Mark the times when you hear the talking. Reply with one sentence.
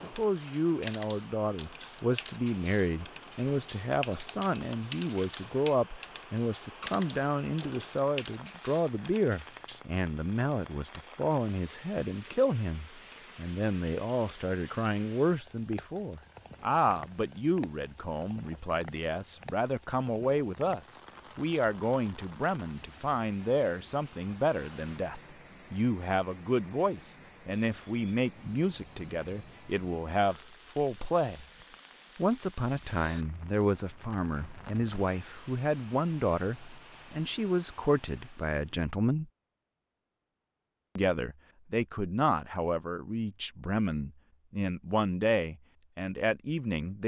You can hear the talking from 0.0 to 31.4 s, from 32.1 to 39.3 s and from 41.0 to 47.0 s.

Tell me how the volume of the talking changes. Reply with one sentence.
The volume of the talking stays about the same.